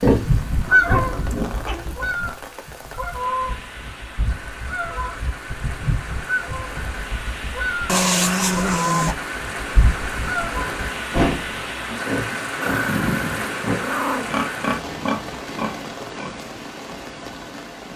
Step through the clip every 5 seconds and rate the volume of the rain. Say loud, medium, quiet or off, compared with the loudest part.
medium, loud, loud, medium.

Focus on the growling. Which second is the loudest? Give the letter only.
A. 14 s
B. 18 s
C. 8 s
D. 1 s
C.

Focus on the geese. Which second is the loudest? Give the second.
1 s.